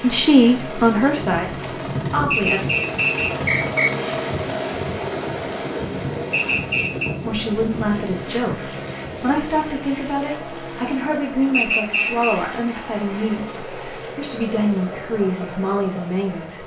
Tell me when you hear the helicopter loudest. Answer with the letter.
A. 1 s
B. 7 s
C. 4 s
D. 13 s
C.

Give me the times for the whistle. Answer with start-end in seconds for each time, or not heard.
2.3-3.9, 6.3-7.1, 11.5-12.4.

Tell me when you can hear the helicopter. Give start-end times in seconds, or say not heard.
0.0-16.6.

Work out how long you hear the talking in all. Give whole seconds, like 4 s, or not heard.
12 s.